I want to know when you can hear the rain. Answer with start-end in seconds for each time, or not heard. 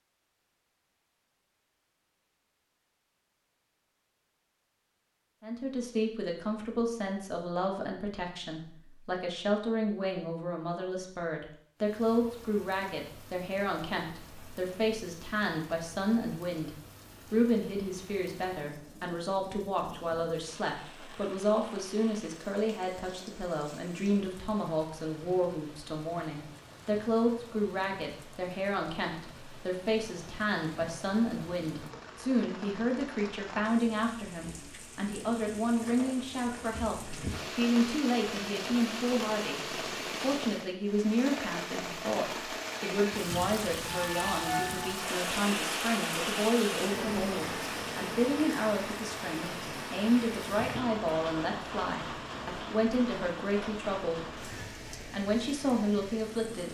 11.8-56.6.